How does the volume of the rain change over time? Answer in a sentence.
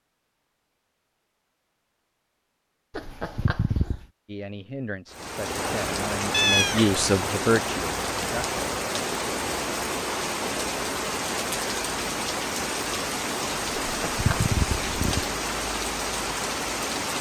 The loudness of the rain stays about the same.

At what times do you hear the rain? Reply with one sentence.
You can hear the rain from 5.0 to 17.1 s.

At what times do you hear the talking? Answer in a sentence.
The talking can be heard from 4.2 to 8.6 s.